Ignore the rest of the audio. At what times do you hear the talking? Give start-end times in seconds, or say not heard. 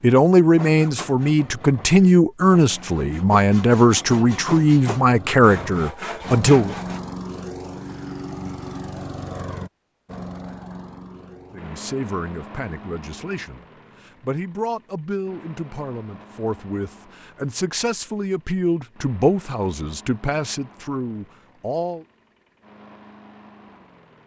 0.0-6.8, 11.5-22.1.